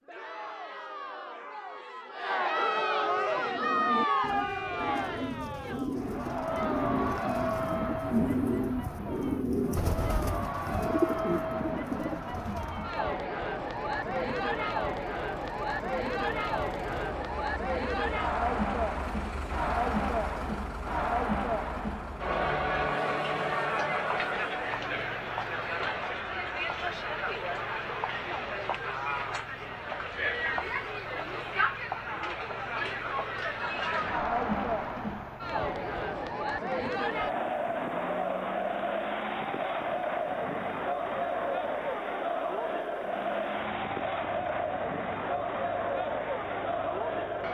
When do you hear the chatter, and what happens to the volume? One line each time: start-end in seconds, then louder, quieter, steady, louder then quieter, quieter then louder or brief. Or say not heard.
0.0-47.4 steady.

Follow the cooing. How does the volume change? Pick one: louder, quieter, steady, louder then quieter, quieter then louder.
louder.